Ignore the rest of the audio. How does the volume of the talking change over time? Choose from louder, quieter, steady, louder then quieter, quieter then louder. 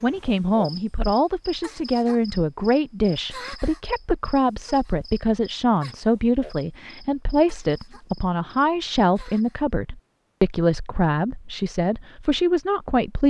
steady.